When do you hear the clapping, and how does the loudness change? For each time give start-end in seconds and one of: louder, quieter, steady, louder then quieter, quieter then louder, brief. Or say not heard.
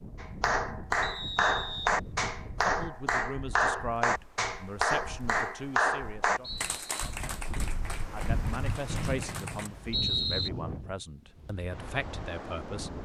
0.1-9.7 quieter.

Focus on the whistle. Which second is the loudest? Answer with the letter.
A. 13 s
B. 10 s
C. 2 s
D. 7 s
B.